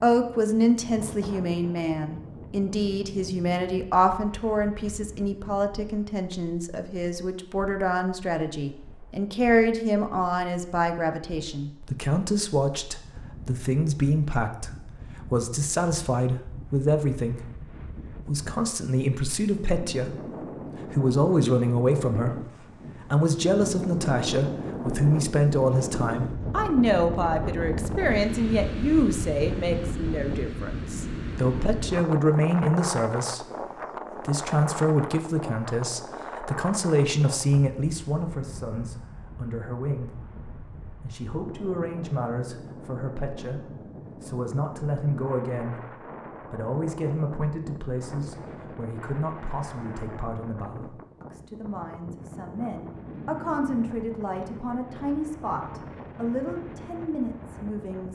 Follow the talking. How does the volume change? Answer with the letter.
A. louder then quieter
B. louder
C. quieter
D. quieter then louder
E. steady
C.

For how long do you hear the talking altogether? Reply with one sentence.
The talking can be heard for 57 seconds in total.